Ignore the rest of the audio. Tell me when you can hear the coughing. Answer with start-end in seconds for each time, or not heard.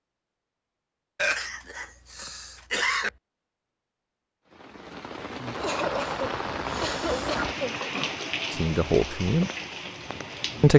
1.1-3.1, 5.5-7.8.